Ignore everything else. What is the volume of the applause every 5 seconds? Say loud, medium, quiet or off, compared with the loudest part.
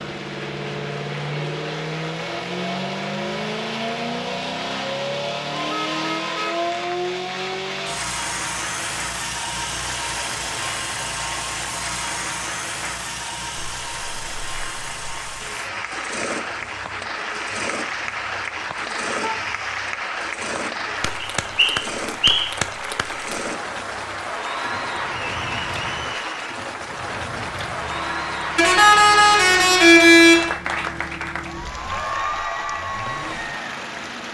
medium, medium, medium, loud, loud, loud, loud.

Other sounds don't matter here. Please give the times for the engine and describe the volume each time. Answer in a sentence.
The engine can be heard from 0.0 to 34.2 s, getting quieter.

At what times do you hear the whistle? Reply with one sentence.
You can hear the whistle from 21.4 to 22.6 s.